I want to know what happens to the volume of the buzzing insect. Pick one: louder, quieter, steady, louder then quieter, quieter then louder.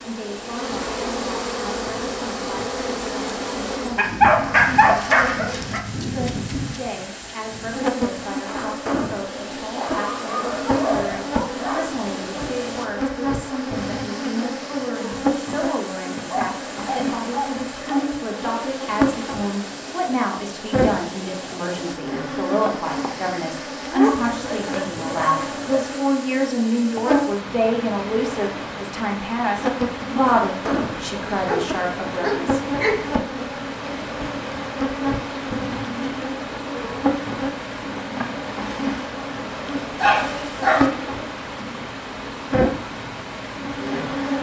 steady.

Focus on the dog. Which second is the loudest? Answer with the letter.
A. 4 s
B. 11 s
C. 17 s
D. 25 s
A.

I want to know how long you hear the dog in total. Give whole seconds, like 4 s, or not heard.
10 s.